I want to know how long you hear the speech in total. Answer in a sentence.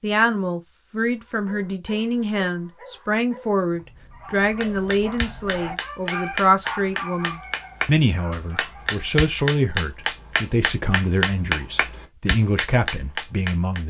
The speech can be heard for 14 seconds in total.